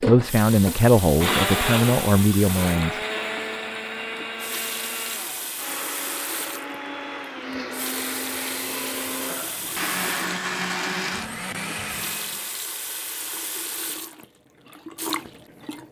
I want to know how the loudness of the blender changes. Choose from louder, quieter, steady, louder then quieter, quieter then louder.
quieter then louder.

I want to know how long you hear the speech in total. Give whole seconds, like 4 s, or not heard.
3 s.